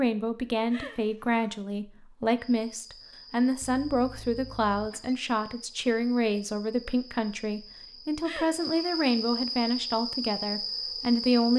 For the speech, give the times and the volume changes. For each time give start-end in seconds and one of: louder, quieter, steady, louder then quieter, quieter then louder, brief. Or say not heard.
0.0-11.5 steady.